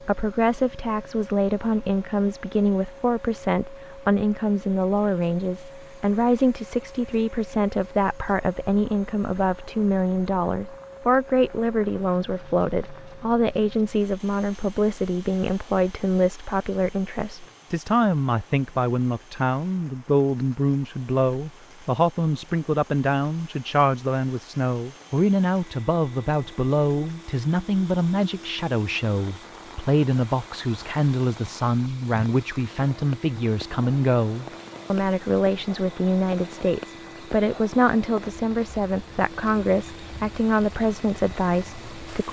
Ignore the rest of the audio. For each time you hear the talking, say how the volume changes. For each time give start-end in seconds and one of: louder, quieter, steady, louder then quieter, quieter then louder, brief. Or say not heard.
0.0-42.2 steady.